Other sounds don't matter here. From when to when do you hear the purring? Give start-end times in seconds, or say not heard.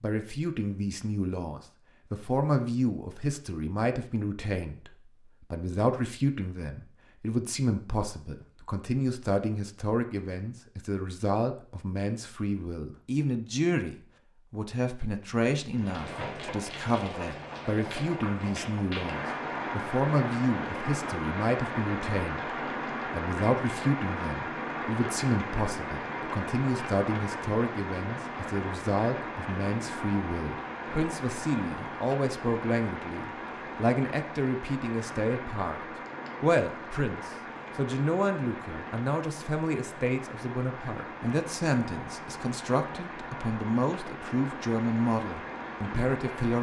not heard.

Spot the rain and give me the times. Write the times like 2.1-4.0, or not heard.
15.7-46.5.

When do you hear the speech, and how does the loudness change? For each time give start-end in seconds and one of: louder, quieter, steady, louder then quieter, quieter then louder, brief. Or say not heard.
0.0-46.5 steady.